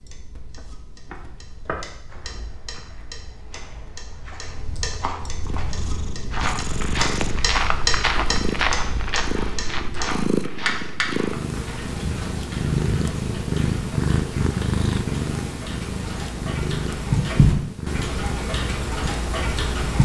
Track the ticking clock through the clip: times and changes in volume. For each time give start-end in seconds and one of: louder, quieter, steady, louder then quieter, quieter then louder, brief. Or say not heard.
0.0-19.9 louder.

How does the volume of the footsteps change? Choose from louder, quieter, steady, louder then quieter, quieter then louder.
louder then quieter.